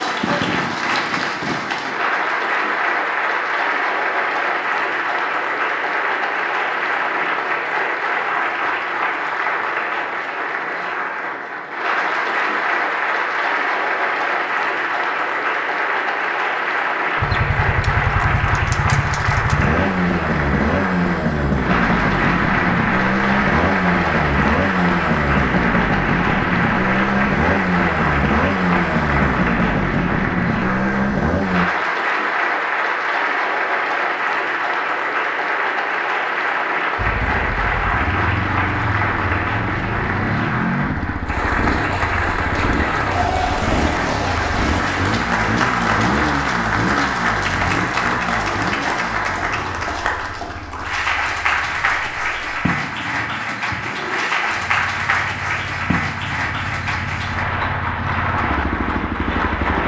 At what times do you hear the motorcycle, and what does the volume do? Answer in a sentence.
You can hear the motorcycle from 17.1 to 31.6 s, at a steady volume; and from 37.0 to 59.8 s, getting quieter then louder.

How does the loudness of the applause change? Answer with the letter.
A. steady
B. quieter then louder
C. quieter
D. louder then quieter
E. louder
A.